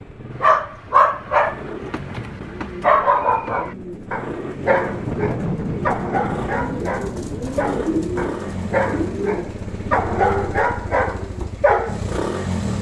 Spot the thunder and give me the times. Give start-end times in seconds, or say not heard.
4.8-7.7.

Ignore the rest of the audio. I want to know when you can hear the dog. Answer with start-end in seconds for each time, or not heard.
0.4-12.0.